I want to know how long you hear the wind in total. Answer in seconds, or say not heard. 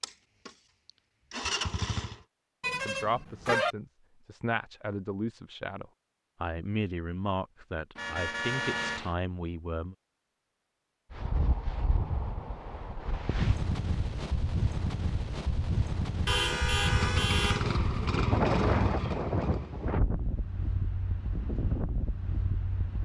12 s.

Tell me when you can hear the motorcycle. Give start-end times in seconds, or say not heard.
0.0-2.2, 16.8-19.7.